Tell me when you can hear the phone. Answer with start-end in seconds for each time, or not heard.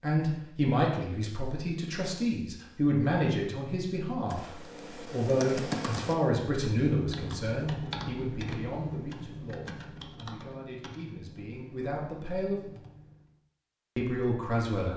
not heard.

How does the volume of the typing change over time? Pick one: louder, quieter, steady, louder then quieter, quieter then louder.
quieter.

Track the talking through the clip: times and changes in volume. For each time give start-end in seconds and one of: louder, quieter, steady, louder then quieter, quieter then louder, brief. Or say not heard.
0.0-12.7 quieter
13.9-14.9 brief.